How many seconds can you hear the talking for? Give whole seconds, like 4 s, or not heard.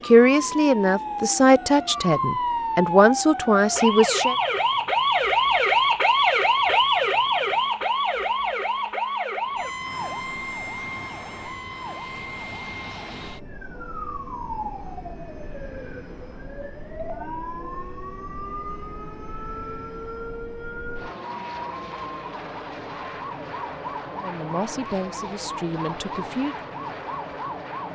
7 s.